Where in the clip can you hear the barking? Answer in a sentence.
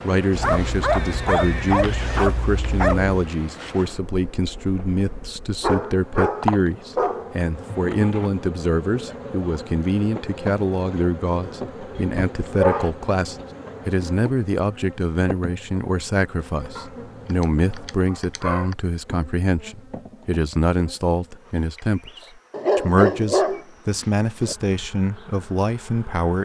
The barking can be heard from 0.3 to 3.2 s, from 5.6 to 7.4 s, from 11.4 to 12.9 s, from 16.8 to 18.8 s and from 22.5 to 24.6 s.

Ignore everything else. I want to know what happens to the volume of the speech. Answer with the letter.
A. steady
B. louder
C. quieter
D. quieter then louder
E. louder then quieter
A.